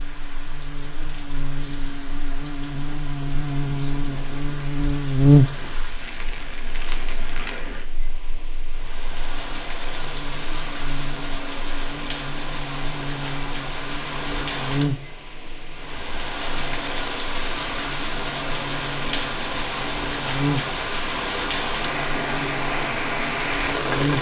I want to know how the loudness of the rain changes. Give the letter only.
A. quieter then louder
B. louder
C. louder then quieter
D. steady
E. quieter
B.